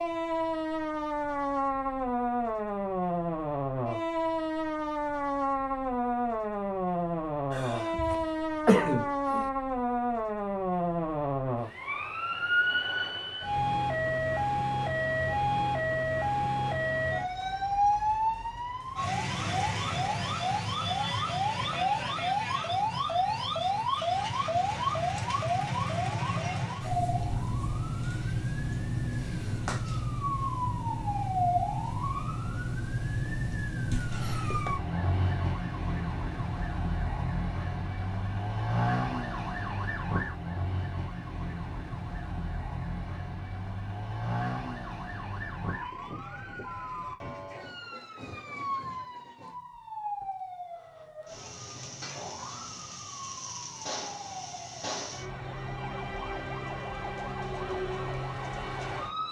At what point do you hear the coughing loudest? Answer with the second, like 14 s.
9 s.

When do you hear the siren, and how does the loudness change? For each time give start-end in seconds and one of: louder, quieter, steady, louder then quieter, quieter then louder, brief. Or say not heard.
0.0-59.2 quieter.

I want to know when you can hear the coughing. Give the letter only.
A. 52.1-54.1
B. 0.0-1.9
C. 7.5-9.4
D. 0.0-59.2
C.